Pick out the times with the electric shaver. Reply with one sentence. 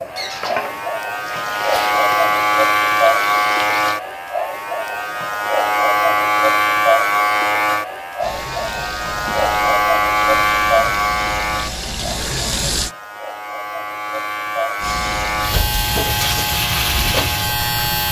The electric shaver can be heard from 0.0 to 18.0 s.